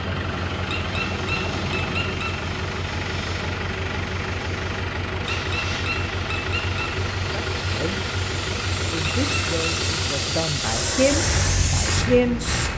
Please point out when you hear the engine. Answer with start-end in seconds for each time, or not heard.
0.0-12.7.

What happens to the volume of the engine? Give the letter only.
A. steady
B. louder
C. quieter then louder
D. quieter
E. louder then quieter
A.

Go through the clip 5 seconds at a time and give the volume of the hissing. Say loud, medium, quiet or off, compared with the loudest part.
quiet, medium, loud.